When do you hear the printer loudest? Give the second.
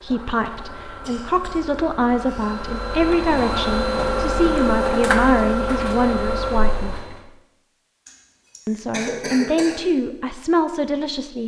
5 s.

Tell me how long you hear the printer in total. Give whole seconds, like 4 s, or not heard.
7 s.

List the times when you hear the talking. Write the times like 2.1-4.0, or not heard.
0.0-7.0, 8.7-11.4.